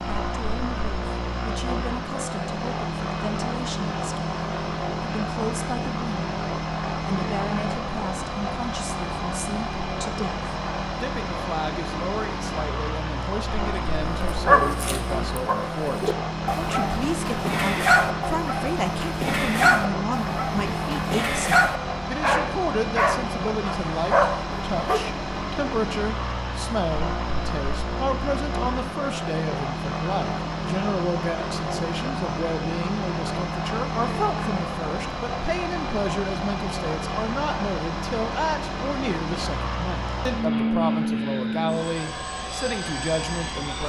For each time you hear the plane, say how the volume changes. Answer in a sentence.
The plane can be heard from 0.0 to 43.8 s, at a steady volume.